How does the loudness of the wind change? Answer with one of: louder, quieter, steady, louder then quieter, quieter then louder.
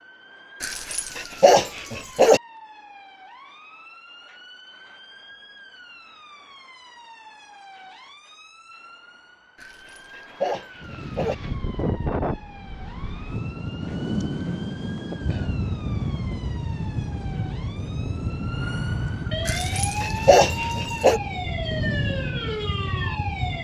steady.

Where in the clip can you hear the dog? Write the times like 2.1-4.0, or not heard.
0.6-2.4, 9.6-11.3, 19.4-21.2.